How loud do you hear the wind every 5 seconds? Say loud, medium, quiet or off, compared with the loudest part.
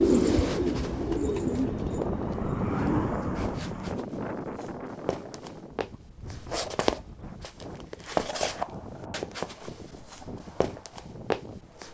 loud, quiet, quiet.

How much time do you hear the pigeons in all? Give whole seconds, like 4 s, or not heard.
3 s.